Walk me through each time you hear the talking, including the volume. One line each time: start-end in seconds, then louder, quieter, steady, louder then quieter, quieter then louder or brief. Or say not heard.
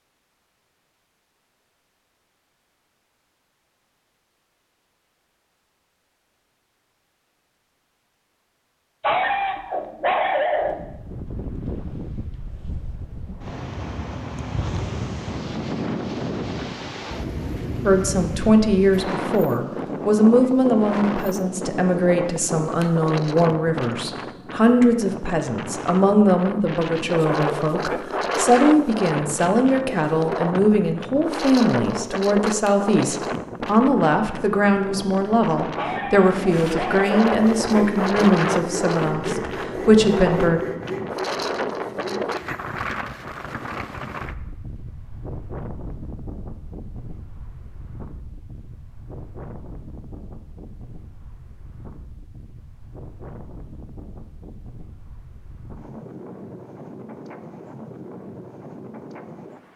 17.9-40.6 steady.